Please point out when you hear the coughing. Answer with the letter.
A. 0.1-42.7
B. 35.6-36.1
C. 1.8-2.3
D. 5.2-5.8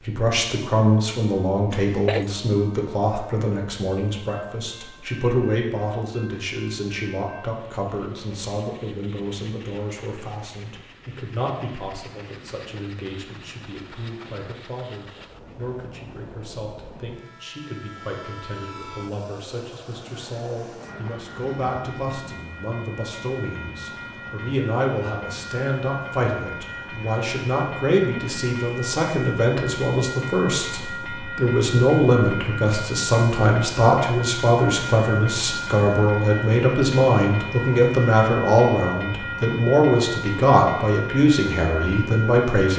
C.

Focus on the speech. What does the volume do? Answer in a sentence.
The volume of the speech goes down, then up.